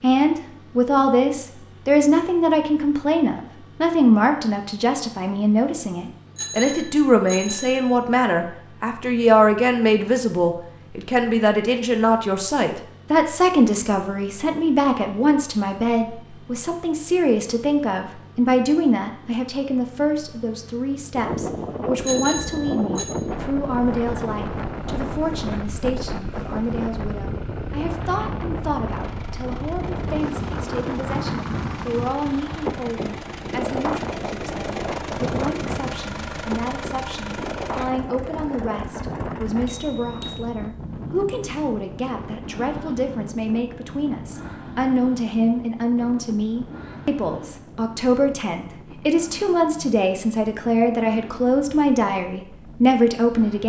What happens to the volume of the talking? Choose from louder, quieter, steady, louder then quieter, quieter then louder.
quieter then louder.